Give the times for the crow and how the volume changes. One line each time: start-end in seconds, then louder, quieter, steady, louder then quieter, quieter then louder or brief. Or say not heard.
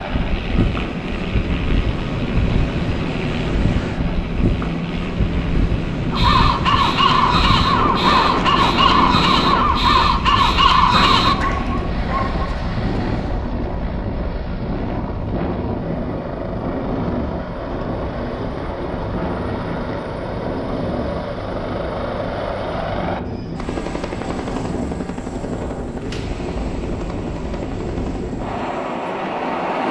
6.1-11.3 steady.